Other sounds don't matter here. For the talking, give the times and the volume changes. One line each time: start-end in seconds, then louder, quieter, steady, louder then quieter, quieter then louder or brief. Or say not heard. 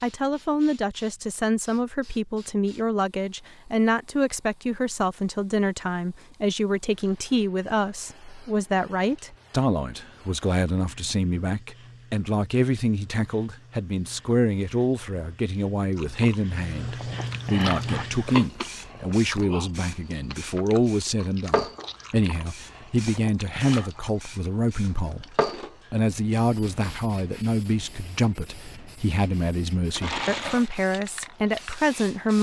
0.0-32.3 steady.